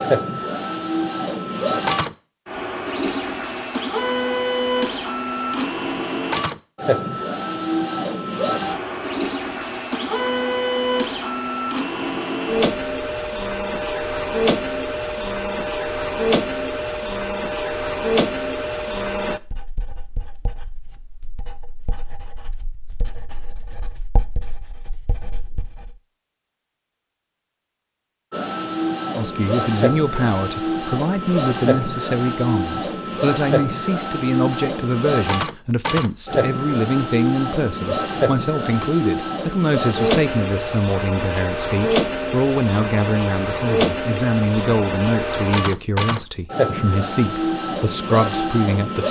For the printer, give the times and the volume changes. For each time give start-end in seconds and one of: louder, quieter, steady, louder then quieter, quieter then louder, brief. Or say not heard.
0.0-19.4 steady
28.3-49.0 steady.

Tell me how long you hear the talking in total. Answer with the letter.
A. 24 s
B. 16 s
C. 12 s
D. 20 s
D.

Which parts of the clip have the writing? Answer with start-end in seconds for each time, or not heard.
19.3-25.9.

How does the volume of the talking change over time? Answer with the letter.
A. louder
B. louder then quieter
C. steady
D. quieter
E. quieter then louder
C.